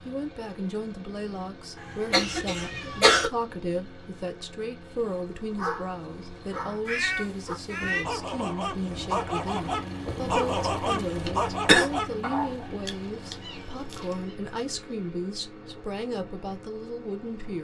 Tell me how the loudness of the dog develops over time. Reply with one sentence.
The loudness of the dog goes up.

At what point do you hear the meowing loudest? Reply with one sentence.
The loudest moment of the meowing is at 7 seconds.